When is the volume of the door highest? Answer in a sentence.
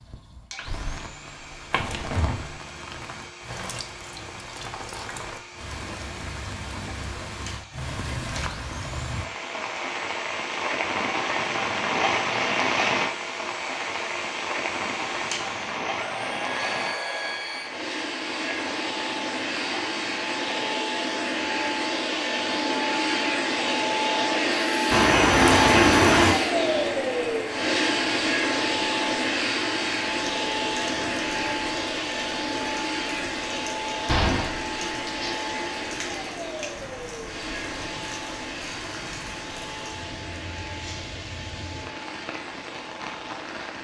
The loudest moment of the door is at 26 seconds.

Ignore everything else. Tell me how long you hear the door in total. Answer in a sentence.
You can hear the door for 4 seconds altogether.